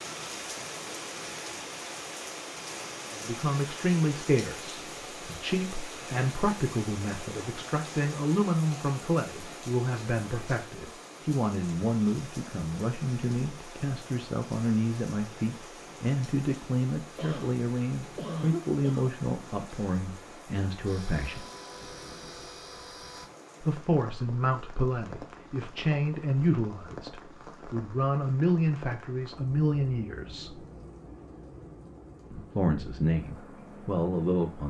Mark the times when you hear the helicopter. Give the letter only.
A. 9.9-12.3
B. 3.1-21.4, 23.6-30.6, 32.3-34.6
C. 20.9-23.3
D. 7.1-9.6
C.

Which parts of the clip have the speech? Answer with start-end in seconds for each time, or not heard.
3.1-21.4, 23.6-30.6, 32.3-34.6.